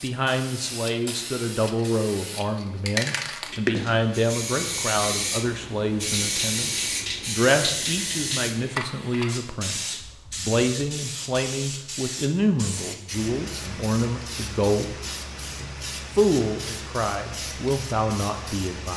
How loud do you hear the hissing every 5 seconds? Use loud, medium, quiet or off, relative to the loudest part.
loud, loud, medium, medium.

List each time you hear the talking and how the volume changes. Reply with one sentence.
The talking can be heard from 0.0 to 18.9 s, at a steady volume.